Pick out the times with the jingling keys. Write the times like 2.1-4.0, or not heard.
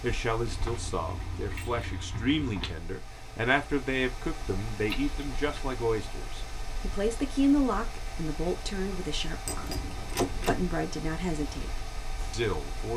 0.5-2.8, 4.9-5.8, 9.4-10.7.